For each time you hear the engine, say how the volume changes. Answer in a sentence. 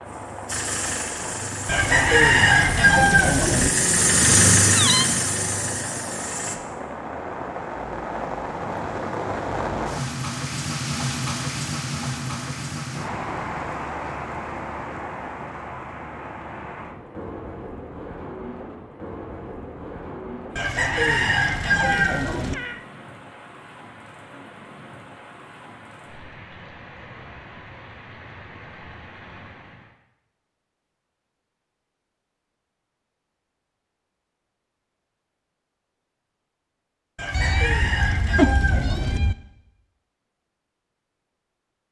You can hear the engine from 0.0 to 6.5 s, getting louder then quieter.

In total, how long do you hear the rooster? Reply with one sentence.
The rooster can be heard for 6 seconds in total.